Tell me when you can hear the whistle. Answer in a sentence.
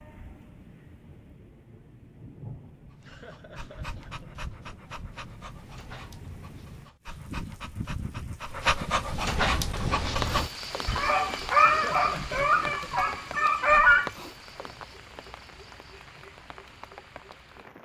You can't hear the whistle here.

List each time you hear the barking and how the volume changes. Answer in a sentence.
The barking can be heard from 2.9 to 14.1 s, getting louder.